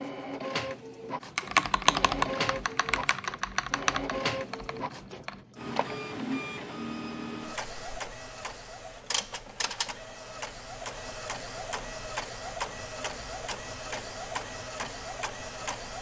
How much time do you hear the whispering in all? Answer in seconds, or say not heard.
not heard.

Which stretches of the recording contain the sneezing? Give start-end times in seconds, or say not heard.
not heard.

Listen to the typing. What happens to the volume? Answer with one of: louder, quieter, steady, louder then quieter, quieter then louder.
quieter then louder.